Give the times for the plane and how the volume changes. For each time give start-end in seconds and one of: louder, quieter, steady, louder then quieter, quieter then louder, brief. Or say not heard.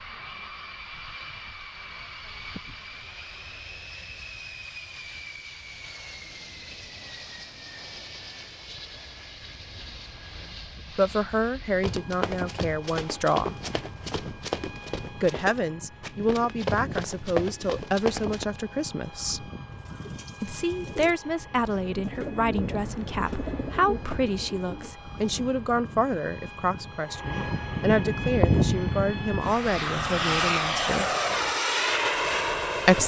0.0-33.0 louder.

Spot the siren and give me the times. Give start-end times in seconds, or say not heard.
not heard.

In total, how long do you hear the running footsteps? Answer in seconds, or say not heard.
7 s.